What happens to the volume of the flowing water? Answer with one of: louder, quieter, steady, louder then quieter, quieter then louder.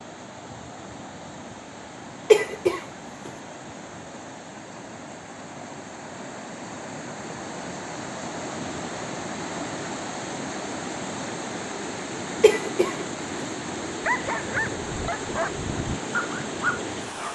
louder.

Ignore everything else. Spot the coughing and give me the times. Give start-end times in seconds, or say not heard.
2.3-3.3, 12.4-12.9.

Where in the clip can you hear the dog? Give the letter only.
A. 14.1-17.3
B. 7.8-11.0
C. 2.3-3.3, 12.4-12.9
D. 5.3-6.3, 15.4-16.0
A.